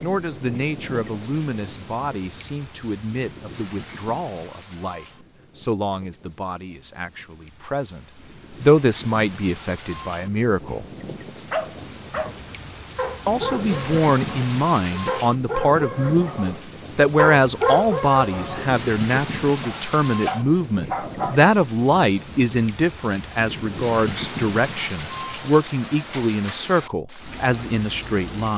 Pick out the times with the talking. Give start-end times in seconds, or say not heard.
0.0-10.8, 13.2-28.5.